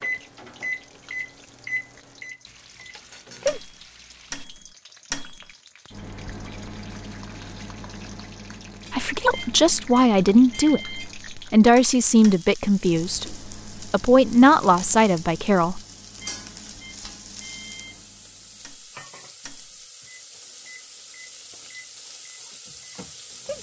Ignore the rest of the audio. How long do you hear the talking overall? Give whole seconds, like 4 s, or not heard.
7 s.